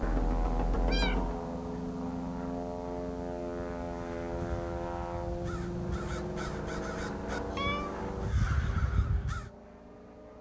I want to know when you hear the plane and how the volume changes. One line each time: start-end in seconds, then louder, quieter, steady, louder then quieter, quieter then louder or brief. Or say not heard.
0.0-10.3 quieter.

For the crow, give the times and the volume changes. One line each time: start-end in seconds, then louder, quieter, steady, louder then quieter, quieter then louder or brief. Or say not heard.
4.0-9.5 louder.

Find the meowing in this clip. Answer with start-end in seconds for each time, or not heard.
0.0-1.4, 7.2-8.0.